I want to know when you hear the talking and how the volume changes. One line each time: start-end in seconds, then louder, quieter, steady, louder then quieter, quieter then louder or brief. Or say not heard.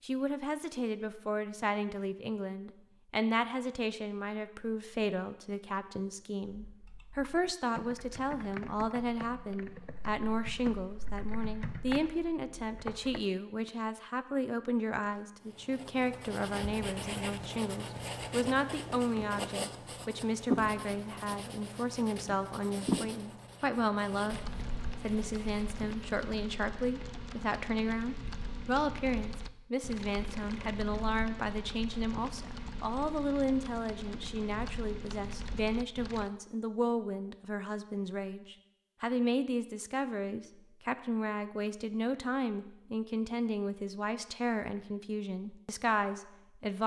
0.0-24.4 steady
25.0-46.8 steady.